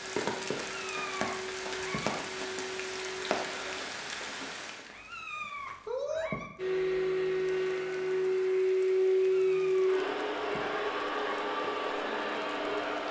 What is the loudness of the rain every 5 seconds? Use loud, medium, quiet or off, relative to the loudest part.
loud, medium, quiet.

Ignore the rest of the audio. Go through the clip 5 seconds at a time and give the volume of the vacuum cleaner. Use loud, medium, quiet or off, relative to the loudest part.
quiet, loud, medium.